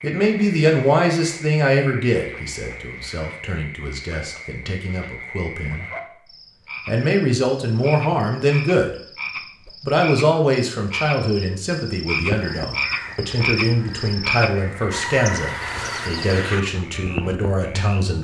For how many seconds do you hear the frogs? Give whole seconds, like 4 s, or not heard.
18 s.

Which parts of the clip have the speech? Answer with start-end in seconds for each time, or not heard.
0.0-5.8, 6.8-9.1, 9.8-18.1.